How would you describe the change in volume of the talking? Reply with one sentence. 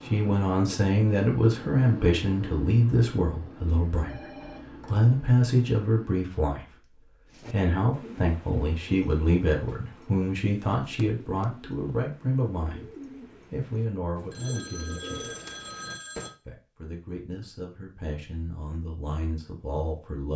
The volume of the talking goes down.